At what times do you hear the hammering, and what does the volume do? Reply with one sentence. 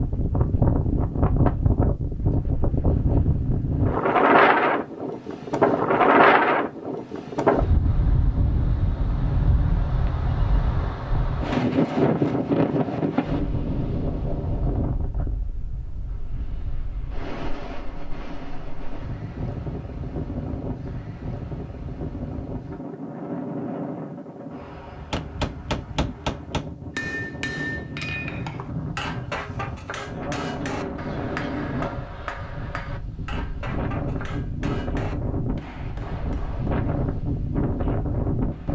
The hammering can be heard from 24.9 to 36.7 s, getting quieter.